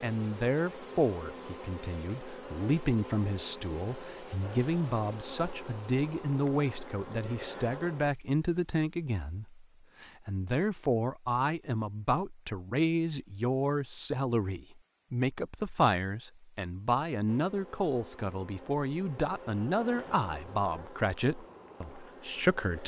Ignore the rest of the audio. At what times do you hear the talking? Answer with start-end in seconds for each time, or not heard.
0.0-22.8.